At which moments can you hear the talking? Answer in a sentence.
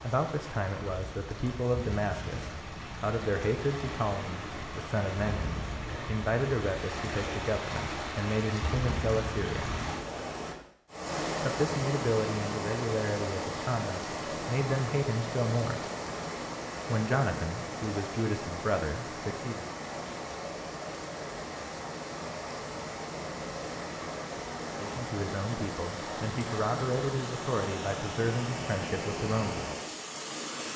You can hear the talking from 0.0 to 9.8 s, from 11.4 to 15.8 s, from 16.9 to 19.7 s and from 24.8 to 29.7 s.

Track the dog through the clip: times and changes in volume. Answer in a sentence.
The dog can't be heard in this clip.